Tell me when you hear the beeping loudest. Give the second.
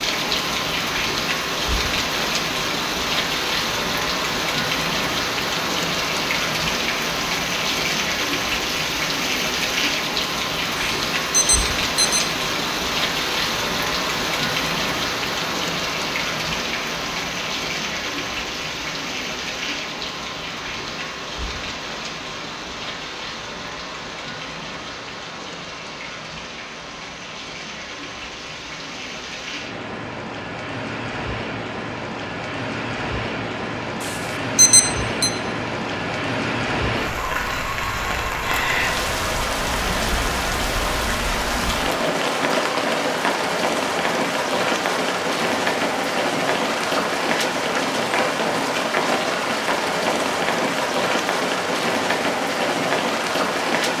35 s.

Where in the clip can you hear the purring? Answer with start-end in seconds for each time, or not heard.
not heard.